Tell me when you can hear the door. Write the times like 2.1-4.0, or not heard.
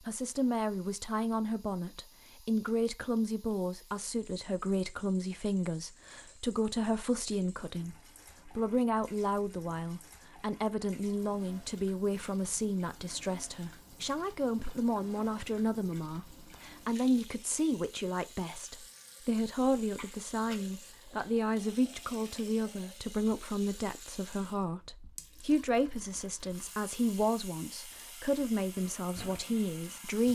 not heard.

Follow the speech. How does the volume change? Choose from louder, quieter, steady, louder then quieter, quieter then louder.
steady.